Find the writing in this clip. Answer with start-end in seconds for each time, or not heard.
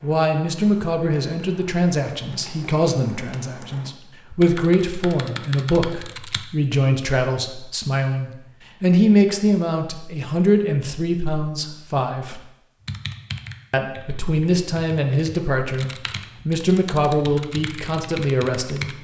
not heard.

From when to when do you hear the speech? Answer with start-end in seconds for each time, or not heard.
0.0-12.4, 13.7-18.9.